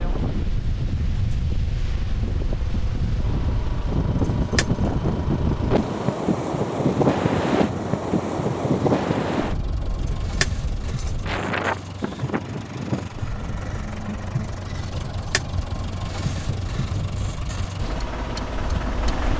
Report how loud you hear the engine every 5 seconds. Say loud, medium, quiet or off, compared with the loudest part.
medium, medium, loud, loud.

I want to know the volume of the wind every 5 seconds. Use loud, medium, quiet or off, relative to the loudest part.
medium, loud, medium, quiet.